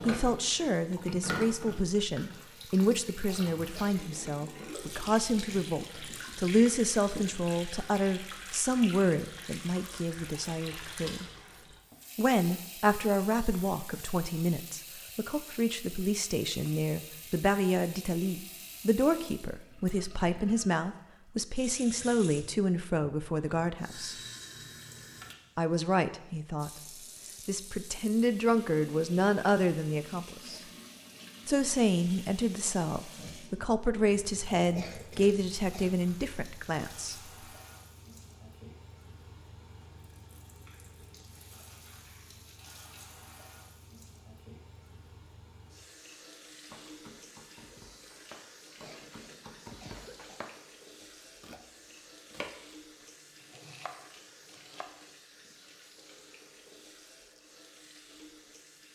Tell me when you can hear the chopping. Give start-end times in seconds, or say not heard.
46.6-54.9.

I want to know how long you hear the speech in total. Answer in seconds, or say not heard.
33 s.